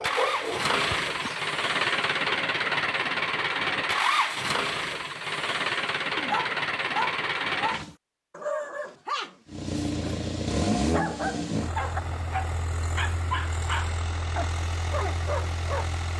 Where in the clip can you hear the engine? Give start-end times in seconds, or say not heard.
0.0-8.0, 9.4-16.1.